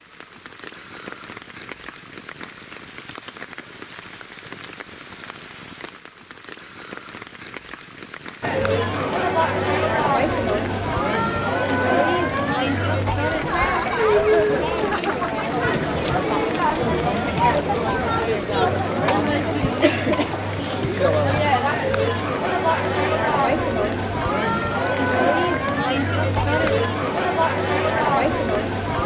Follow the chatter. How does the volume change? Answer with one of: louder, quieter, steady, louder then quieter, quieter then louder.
steady.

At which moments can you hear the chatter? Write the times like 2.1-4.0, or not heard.
8.4-29.0.